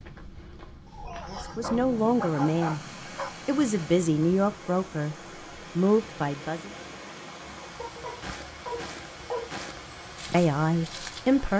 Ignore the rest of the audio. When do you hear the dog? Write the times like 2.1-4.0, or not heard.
0.8-3.4, 7.8-9.6.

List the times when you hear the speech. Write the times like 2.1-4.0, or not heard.
1.2-2.8, 3.5-5.2, 5.8-6.7, 10.3-11.5.